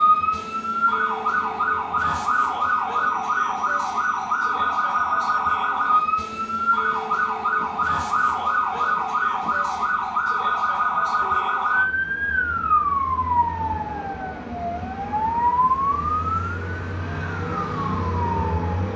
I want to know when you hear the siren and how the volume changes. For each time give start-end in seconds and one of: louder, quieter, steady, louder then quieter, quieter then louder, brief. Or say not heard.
0.0-18.9 steady.